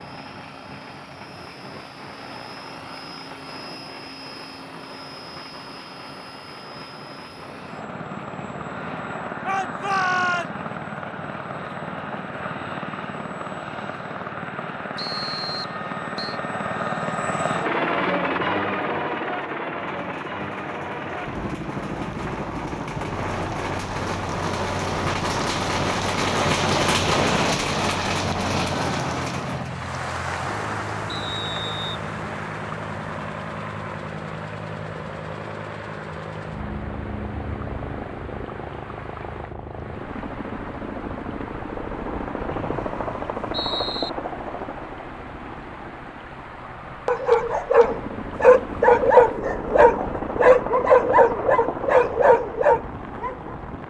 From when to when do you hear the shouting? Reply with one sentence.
The shouting can be heard from 9.4 to 10.6 s.